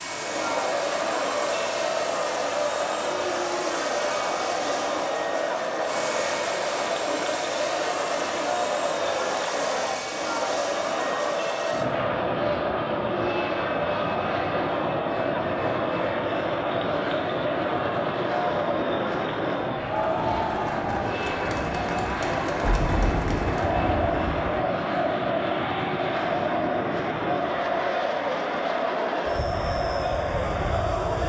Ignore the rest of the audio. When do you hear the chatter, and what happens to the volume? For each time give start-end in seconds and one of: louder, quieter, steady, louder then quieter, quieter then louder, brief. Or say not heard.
0.0-31.2 steady.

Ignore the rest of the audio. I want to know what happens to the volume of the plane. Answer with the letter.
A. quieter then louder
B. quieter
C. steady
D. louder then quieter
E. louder
C.